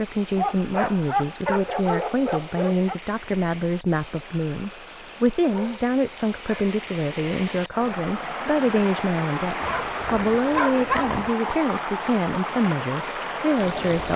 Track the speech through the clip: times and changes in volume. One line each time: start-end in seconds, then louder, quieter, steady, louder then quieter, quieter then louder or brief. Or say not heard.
0.0-14.1 steady.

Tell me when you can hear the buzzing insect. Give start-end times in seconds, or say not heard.
not heard.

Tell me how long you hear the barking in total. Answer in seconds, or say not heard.
6 s.